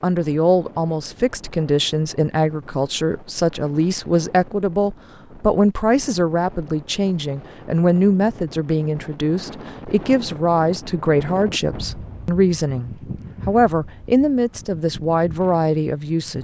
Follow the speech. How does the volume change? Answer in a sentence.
The volume of the speech stays about the same.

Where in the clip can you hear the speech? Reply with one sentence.
You can hear the speech from 0.0 to 16.3 s.